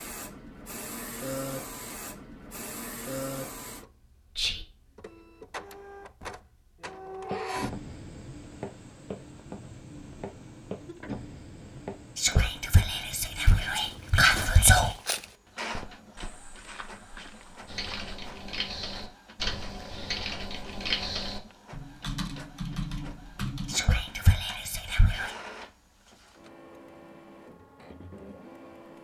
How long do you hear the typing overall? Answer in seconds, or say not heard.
7 s.